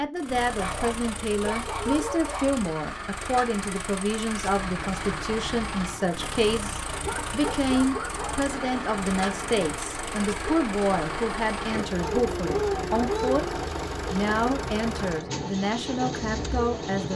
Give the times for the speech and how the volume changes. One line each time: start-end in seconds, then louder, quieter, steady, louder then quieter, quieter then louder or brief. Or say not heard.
0.0-17.1 steady.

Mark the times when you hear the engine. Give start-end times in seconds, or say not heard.
0.0-17.1.